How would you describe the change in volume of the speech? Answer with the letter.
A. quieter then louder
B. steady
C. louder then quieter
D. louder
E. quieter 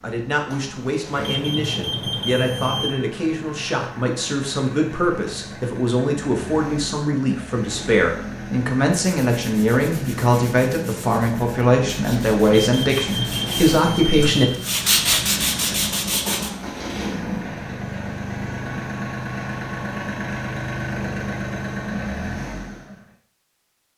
D.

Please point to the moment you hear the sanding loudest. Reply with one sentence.
The loudest moment of the sanding is at 15 seconds.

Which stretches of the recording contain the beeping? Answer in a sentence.
The beeping can be heard from 1.1 to 2.9 s and from 12.4 to 14.4 s.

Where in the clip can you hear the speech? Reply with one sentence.
The speech can be heard from 0.0 to 14.5 s.